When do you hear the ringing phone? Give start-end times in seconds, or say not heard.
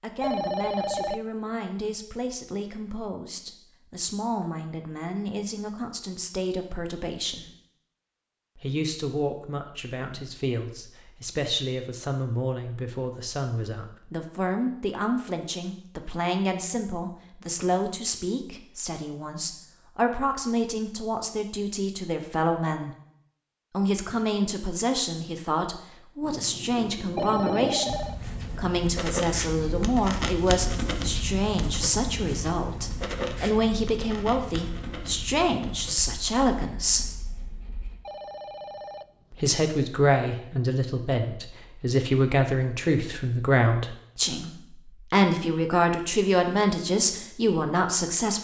0.2-1.2, 27.1-28.1, 38.0-39.6.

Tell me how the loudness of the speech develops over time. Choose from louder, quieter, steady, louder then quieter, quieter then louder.
louder.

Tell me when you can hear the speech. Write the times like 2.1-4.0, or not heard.
0.0-7.5, 8.6-22.9, 23.7-37.1, 39.3-48.3.